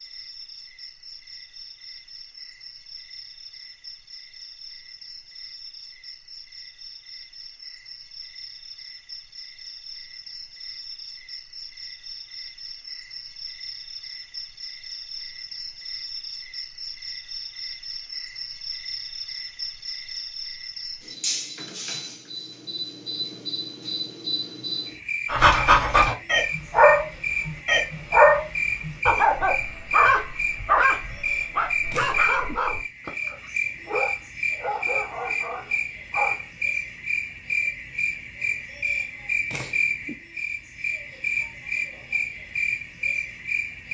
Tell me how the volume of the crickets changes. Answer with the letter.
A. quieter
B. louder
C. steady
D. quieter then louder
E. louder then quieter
B.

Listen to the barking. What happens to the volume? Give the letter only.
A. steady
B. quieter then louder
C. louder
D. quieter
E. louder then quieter
D.